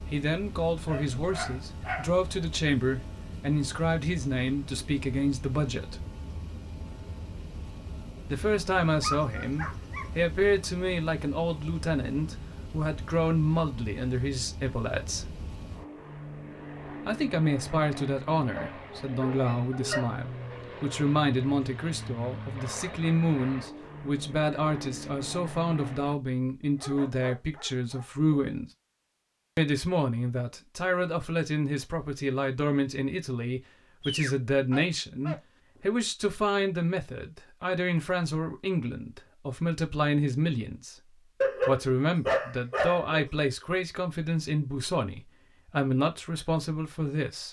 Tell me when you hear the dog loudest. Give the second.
42 s.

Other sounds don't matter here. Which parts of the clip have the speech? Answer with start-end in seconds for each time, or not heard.
0.1-6.0, 8.2-15.4, 17.1-28.7, 29.6-47.4.